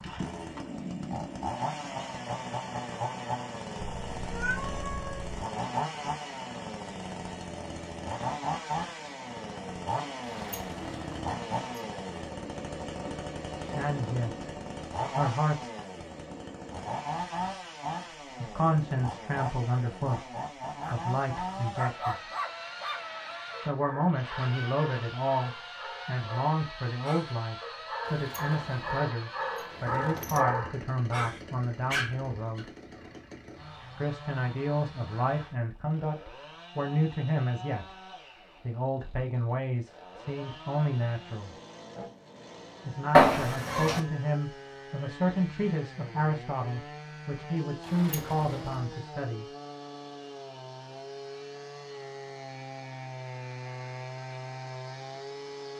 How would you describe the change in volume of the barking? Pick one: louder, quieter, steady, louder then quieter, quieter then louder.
quieter then louder.